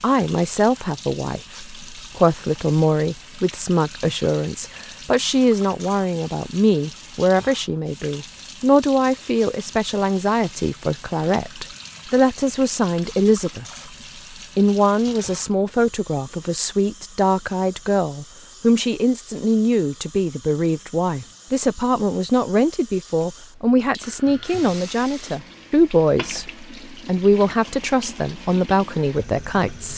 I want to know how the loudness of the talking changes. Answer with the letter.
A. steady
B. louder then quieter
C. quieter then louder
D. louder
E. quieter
A.